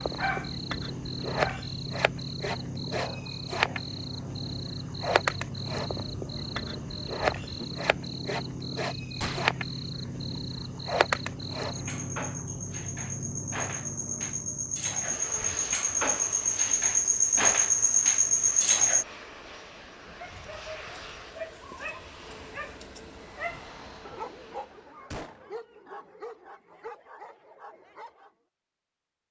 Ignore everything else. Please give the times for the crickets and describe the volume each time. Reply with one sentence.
The crickets can be heard from 0.0 to 19.1 s, getting louder.